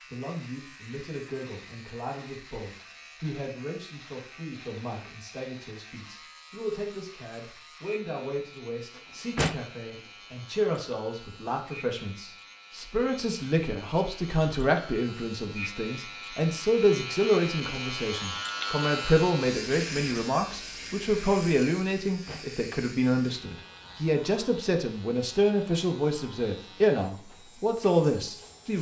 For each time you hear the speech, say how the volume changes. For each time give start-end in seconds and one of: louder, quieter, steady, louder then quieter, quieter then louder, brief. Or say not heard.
0.1-28.7 louder.